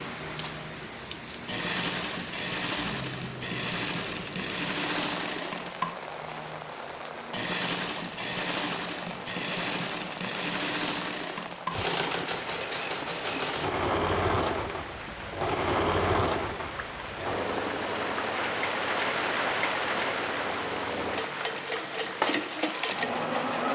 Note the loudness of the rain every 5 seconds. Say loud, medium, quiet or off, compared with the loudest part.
medium, medium, medium, loud, loud.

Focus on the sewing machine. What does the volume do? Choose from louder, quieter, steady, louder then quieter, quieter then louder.
steady.